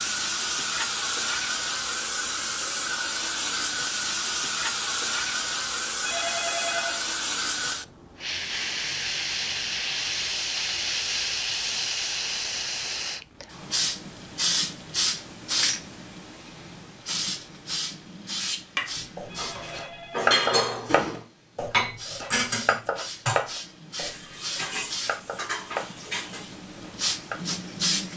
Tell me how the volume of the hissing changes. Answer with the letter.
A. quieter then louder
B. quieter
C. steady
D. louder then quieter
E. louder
B.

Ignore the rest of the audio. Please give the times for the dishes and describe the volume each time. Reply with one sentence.
You can hear the dishes from 18.9 to 26.6 s, getting quieter.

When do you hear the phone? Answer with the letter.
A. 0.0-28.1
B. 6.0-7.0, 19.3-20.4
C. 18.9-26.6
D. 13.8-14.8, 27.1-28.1
B.